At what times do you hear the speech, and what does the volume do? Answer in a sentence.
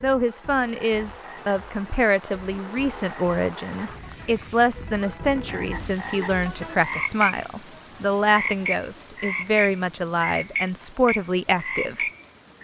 You can hear the speech from 0.0 to 12.1 s, at a steady volume.